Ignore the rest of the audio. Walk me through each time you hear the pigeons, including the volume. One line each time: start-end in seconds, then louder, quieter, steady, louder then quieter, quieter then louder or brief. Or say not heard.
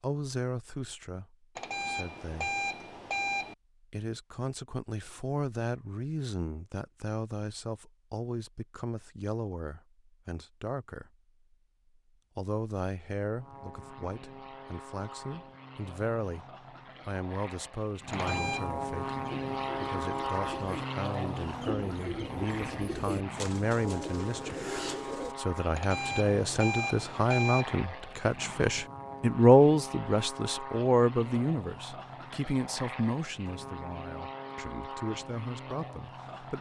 19.1-25.4 louder.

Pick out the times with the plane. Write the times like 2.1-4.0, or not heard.
13.2-36.5.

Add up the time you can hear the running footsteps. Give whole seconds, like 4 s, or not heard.
not heard.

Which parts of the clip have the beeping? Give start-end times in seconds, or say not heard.
1.6-3.5, 18.1-18.7, 25.8-27.8.